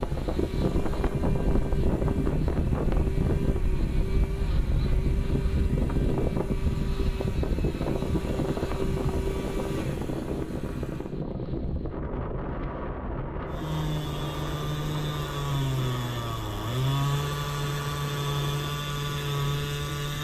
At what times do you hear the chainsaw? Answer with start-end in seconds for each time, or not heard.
0.0-11.2, 13.4-20.1.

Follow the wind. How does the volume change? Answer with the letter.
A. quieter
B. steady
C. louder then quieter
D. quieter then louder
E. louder
A.